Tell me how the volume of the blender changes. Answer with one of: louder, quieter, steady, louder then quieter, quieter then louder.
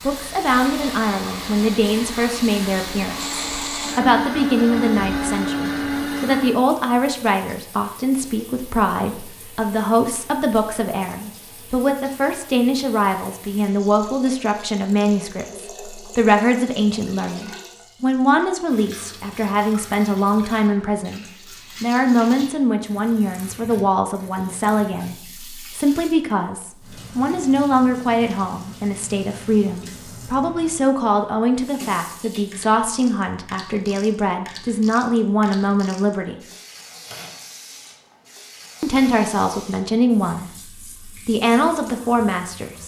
louder.